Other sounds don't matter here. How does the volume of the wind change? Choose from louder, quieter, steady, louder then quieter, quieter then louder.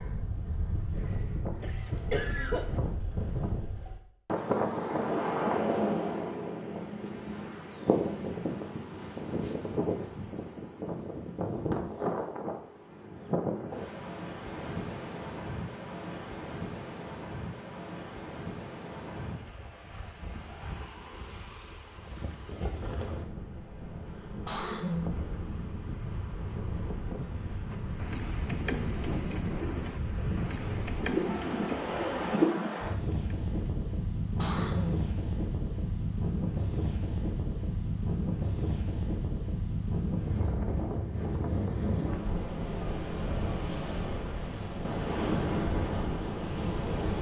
quieter then louder.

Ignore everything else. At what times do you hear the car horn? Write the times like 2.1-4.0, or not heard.
31.2-32.1.